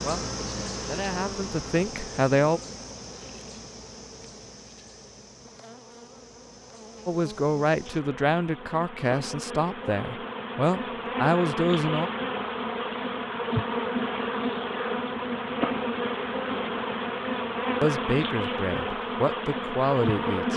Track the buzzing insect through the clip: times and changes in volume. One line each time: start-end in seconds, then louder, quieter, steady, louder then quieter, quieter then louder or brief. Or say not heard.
0.0-20.5 quieter then louder.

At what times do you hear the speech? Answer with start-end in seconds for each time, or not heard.
0.0-2.6, 7.0-12.1, 17.8-20.5.